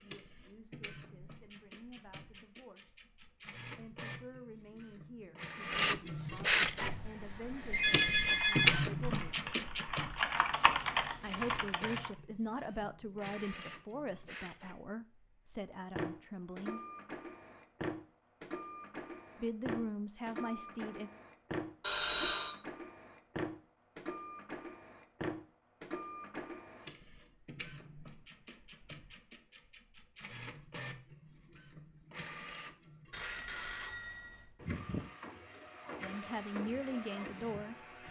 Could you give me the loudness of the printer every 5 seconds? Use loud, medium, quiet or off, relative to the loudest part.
quiet, loud, quiet, quiet, quiet, quiet, quiet, quiet.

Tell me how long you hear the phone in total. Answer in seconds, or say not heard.
3 s.